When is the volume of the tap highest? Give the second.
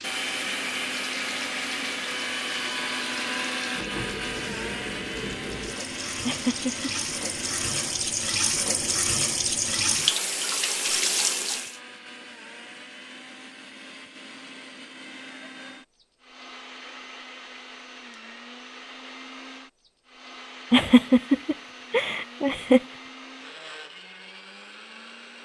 10 s.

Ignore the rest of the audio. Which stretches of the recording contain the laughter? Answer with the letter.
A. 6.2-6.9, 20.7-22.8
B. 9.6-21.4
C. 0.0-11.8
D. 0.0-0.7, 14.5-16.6
A.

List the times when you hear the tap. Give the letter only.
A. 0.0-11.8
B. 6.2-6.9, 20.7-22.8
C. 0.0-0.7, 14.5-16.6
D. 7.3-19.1
A.